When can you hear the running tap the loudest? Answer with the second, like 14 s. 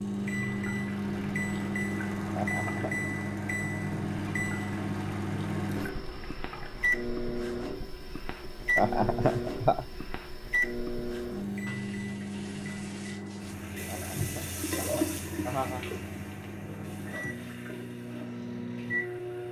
15 s.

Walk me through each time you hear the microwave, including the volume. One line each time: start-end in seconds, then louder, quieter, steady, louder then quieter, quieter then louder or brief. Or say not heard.
0.0-19.4 quieter.